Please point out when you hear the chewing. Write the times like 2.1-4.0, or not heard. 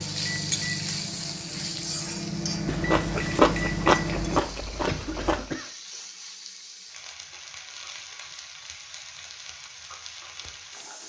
2.6-5.5.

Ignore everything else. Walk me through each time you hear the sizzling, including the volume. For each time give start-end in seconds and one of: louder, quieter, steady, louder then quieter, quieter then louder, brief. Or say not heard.
0.0-11.0 quieter.